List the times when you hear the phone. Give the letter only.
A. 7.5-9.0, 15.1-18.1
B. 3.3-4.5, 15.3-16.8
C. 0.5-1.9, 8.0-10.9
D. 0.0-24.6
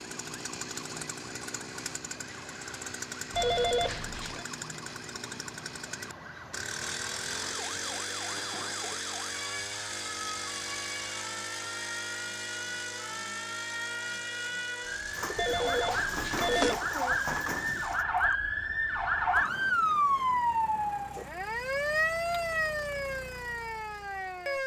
B.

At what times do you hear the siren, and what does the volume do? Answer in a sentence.
You can hear the siren from 0.0 to 24.6 s, getting louder.